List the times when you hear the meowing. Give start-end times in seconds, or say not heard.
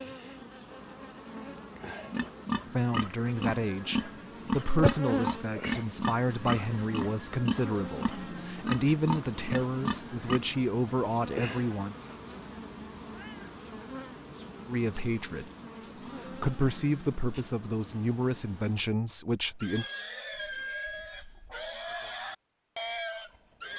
13.0-13.6.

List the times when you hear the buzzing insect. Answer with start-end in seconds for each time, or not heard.
0.0-18.9.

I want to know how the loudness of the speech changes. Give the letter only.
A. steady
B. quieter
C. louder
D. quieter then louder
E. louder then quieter
A.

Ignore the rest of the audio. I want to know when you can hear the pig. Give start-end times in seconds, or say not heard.
2.1-10.4, 19.6-23.7.